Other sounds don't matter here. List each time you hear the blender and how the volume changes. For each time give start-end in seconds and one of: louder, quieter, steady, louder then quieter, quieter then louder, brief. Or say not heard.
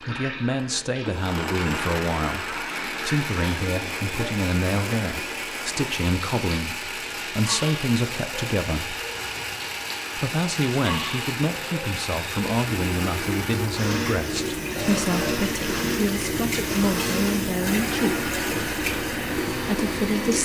0.0-20.4 steady.